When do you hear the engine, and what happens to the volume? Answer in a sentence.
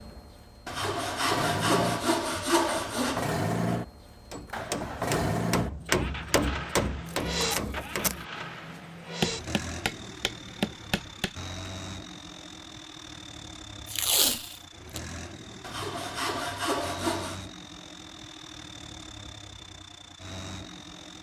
You can hear the engine from 0.0 to 21.1 s, getting quieter.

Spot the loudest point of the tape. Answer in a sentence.
The volume of the tape peaks at 14 seconds.